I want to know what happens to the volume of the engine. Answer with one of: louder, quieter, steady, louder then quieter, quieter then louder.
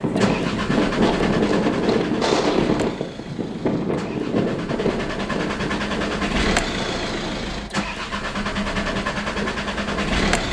quieter then louder.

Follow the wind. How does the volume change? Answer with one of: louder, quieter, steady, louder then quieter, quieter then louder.
quieter.